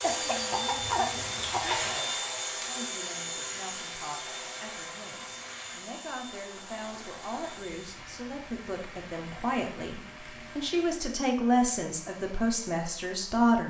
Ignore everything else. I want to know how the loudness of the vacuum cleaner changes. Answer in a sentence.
The loudness of the vacuum cleaner goes down.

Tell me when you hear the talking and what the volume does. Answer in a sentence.
You can hear the talking from 0.1 to 13.6 s, getting louder.